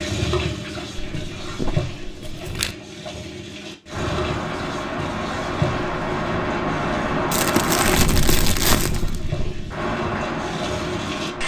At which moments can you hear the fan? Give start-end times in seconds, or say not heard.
3.9-11.4.